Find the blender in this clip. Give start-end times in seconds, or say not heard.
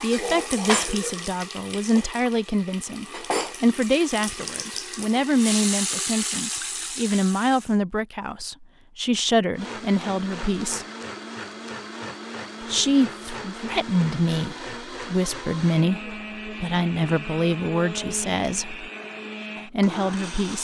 9.6-20.6.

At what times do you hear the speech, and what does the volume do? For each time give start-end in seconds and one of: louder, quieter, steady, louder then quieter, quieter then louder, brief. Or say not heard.
0.0-10.8 steady
12.7-18.9 steady
19.6-20.6 brief.